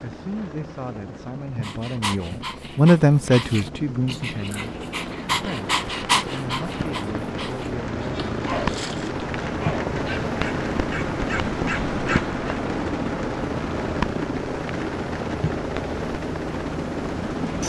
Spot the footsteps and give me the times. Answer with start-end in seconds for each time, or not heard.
not heard.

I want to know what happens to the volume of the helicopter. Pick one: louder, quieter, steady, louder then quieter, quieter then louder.
louder.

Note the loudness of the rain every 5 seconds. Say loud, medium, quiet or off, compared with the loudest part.
off, loud, loud, medium.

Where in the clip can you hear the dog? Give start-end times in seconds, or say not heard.
1.6-12.4.